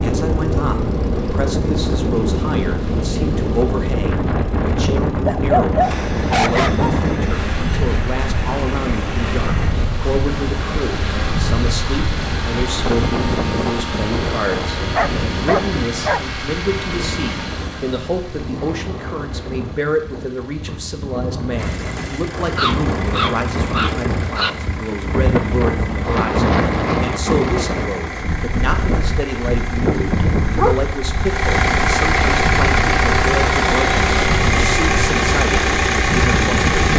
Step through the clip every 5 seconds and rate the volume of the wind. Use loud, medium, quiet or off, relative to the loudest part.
loud, loud, loud, medium, medium, loud, loud, loud.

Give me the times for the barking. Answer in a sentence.
You can hear the barking from 5.0 to 6.9 s, from 14.9 to 16.2 s, from 22.6 to 24.5 s and from 29.9 to 30.9 s.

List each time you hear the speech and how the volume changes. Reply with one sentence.
You can hear the speech from 0.0 to 36.6 s, at a steady volume.